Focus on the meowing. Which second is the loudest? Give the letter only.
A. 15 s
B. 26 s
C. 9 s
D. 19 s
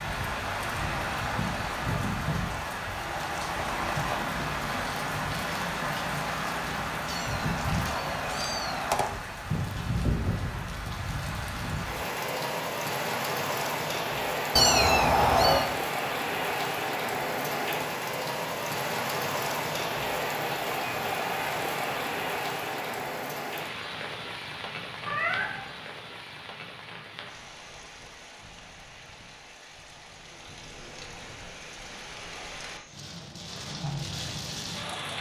A.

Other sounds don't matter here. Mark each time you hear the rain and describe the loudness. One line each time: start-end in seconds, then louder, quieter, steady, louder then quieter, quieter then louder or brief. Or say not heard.
0.0-35.1 quieter.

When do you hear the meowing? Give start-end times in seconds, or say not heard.
7.1-9.1, 14.6-15.7, 25.0-25.7.